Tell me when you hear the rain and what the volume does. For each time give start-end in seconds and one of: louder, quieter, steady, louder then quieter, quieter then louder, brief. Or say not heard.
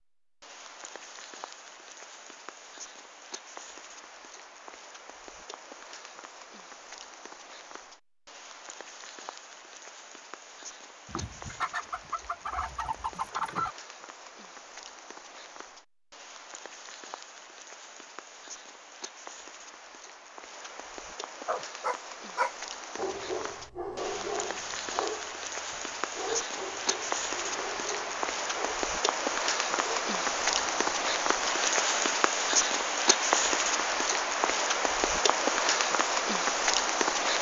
0.2-37.3 louder.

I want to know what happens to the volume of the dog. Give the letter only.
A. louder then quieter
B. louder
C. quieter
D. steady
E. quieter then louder
C.